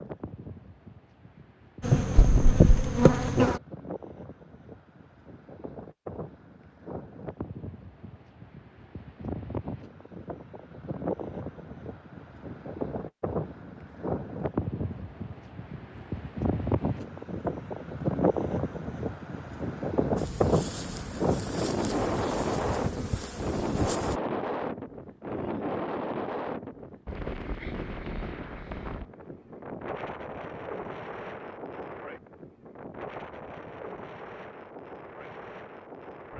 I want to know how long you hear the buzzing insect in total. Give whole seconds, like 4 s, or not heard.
6 s.